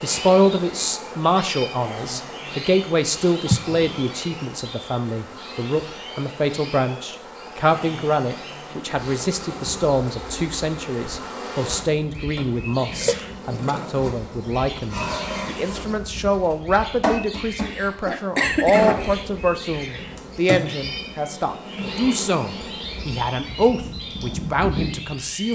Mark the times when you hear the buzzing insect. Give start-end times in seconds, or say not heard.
0.0-25.5.